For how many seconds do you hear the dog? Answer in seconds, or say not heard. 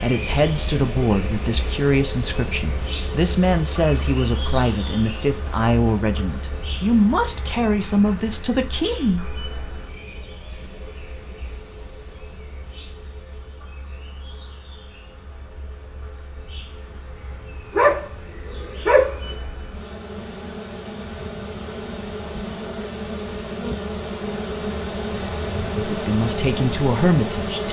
2 s.